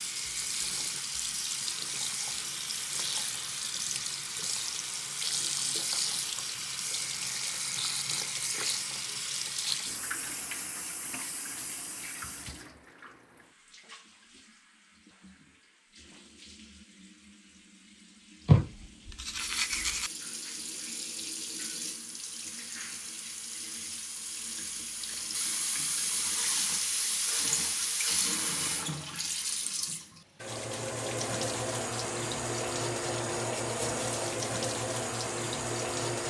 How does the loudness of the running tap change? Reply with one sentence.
The volume of the running tap goes down, then up.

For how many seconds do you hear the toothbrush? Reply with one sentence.
You can hear the toothbrush for 2 seconds altogether.